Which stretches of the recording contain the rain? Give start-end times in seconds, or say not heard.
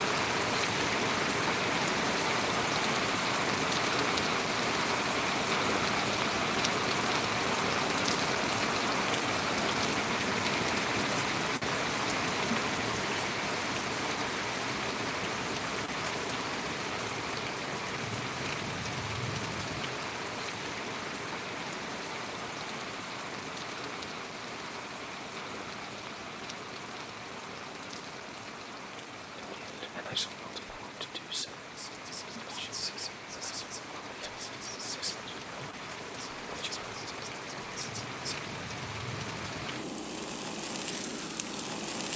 0.0-42.1.